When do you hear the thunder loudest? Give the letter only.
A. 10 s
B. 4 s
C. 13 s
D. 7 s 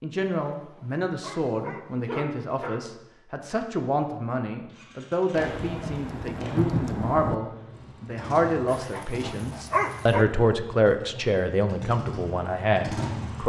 D.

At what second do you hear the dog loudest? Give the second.
10 s.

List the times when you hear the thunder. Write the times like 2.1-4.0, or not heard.
5.4-7.3.